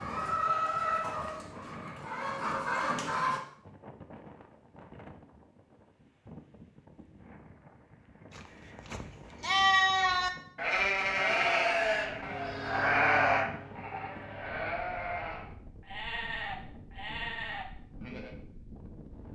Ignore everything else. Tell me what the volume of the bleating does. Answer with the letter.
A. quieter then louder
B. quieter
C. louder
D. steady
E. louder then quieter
B.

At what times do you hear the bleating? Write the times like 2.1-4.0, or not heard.
8.3-18.4.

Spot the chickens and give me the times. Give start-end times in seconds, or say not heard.
0.0-3.4.